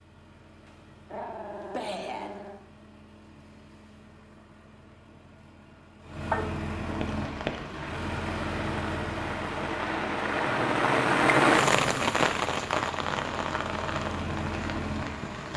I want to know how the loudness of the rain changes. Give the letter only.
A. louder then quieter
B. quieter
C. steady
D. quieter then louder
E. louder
A.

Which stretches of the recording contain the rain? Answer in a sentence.
The rain can be heard from 6.8 to 15.5 s.